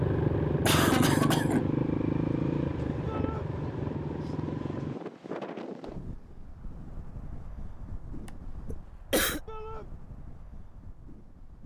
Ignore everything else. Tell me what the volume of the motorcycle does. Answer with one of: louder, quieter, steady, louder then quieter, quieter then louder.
quieter.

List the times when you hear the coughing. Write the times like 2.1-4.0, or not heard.
0.7-1.7, 8.2-9.4.